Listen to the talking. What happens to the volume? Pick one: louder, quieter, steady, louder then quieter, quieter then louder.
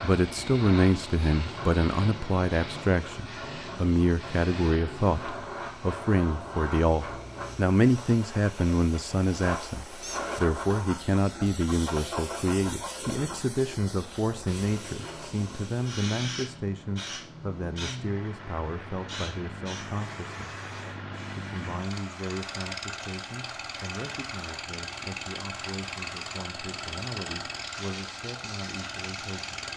quieter.